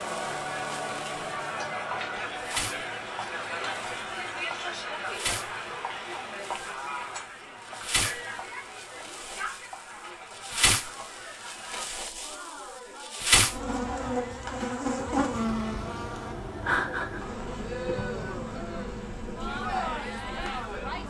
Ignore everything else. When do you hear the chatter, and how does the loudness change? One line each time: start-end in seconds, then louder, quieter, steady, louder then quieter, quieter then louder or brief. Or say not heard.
0.0-21.0 quieter then louder.